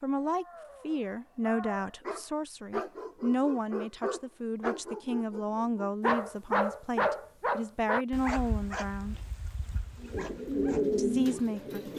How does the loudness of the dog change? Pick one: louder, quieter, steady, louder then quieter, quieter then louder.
louder then quieter.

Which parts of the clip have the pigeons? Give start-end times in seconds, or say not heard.
9.9-11.9.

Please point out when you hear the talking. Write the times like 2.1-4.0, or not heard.
0.0-9.2, 10.9-11.8.